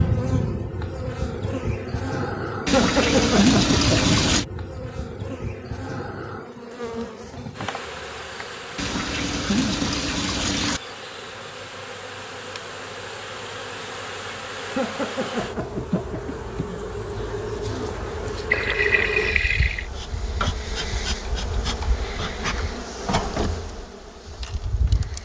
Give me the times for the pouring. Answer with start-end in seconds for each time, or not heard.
2.6-4.5, 8.8-10.8, 18.5-19.9.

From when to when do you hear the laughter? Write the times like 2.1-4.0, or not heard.
2.7-4.2, 14.8-16.4.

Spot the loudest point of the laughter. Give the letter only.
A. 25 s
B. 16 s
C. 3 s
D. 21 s
C.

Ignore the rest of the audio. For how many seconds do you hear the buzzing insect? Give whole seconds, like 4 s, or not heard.
25 s.